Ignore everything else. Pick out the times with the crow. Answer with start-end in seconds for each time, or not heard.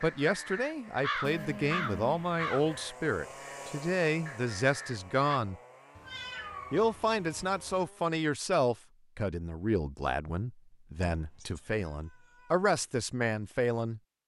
0.0-5.4.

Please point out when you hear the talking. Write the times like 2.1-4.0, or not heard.
0.0-5.6, 6.7-14.0.